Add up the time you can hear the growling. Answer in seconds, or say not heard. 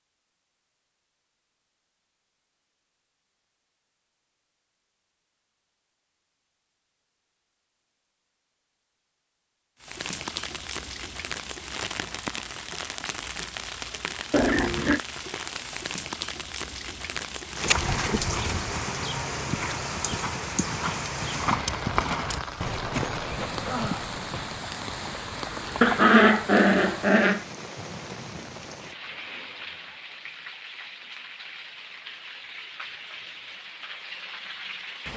2 s.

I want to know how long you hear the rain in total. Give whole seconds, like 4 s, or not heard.
25 s.